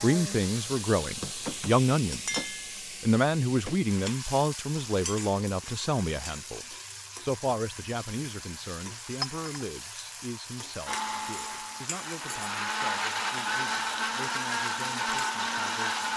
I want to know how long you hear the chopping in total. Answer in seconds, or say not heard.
not heard.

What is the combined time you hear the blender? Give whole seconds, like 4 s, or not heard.
5 s.